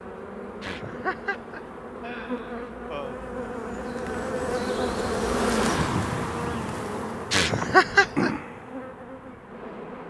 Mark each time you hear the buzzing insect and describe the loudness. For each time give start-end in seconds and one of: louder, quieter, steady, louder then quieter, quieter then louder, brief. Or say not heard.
0.0-10.0 louder then quieter.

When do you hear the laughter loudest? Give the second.
8 s.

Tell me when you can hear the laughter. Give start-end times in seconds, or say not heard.
0.6-3.2, 7.3-8.3.